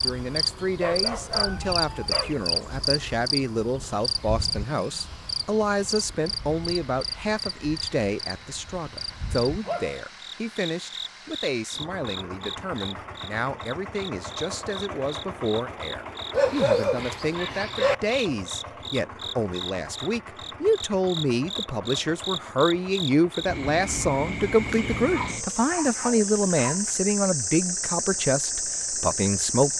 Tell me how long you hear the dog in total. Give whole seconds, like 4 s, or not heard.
6 s.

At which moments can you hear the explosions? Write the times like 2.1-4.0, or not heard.
not heard.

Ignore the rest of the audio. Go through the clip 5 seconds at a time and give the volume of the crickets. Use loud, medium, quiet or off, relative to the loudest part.
loud, medium, medium, medium, loud, loud.